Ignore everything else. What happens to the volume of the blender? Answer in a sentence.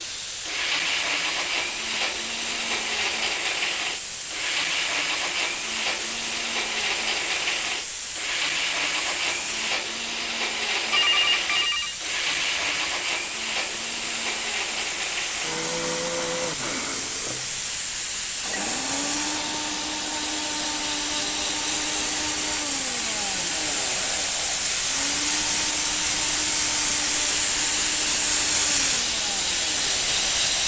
The loudness of the blender goes down.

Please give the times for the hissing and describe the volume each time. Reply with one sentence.
You can hear the hissing from 0.0 to 30.6 s, getting louder.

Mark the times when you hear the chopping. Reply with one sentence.
You can't hear the chopping here.